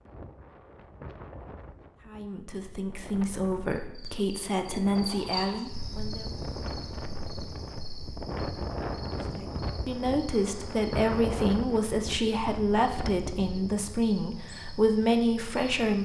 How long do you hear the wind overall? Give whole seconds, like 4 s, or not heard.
14 s.